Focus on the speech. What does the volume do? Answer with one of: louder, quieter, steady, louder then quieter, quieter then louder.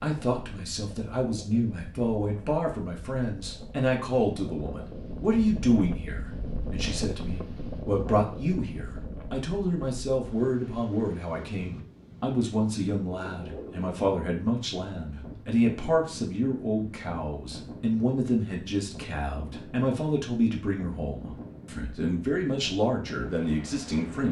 steady.